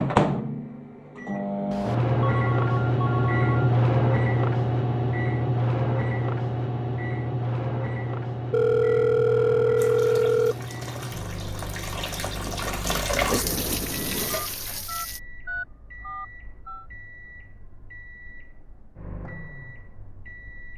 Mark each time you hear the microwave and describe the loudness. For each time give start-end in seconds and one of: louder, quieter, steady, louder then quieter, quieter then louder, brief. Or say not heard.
0.0-20.7 quieter.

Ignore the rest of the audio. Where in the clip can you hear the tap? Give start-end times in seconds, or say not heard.
9.8-15.2.